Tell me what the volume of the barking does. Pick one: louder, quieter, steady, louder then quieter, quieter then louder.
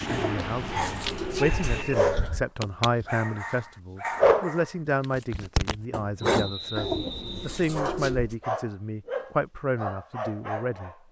louder then quieter.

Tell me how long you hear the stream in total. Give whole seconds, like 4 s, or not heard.
not heard.